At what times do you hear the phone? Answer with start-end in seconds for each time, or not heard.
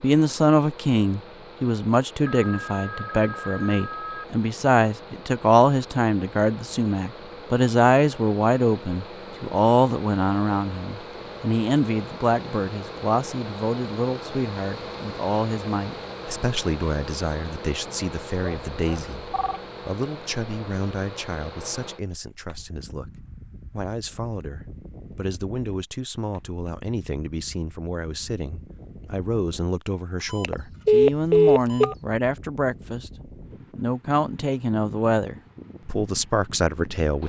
2.2-4.2, 18.4-19.6, 30.3-31.9.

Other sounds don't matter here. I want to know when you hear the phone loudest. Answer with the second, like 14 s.
31 s.